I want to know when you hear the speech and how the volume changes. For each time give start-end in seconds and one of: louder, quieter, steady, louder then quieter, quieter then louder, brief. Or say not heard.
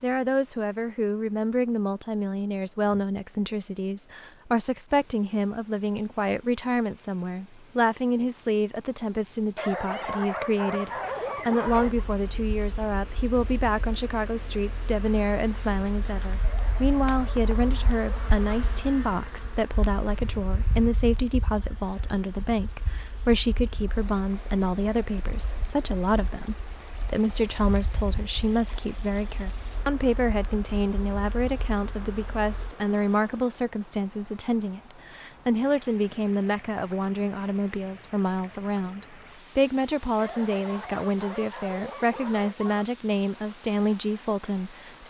0.0-45.0 steady.